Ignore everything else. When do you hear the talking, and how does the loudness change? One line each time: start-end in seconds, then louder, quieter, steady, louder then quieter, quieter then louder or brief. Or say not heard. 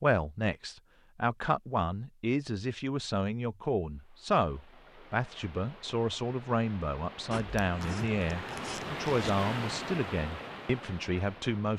0.0-11.7 steady.